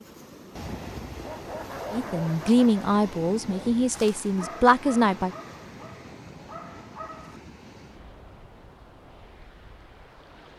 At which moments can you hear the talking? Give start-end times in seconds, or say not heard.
1.9-5.3.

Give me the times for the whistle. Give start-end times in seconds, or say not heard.
not heard.